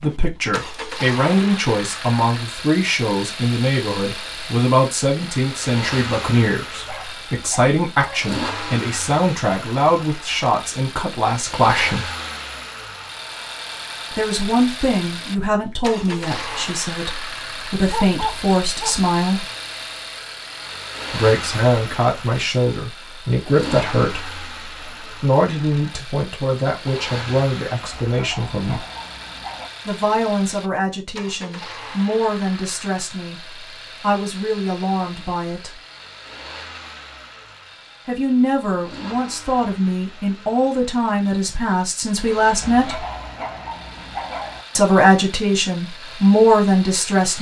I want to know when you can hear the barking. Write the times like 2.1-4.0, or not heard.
6.8-8.3, 17.9-19.5, 27.9-29.7, 42.6-44.6.